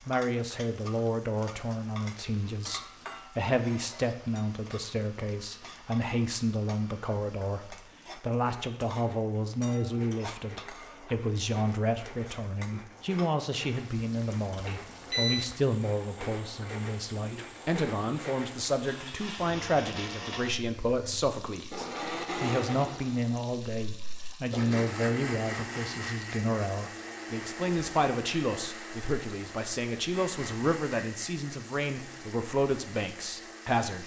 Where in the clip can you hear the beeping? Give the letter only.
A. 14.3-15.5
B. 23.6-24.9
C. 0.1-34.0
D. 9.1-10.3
A.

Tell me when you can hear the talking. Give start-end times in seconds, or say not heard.
0.1-34.0.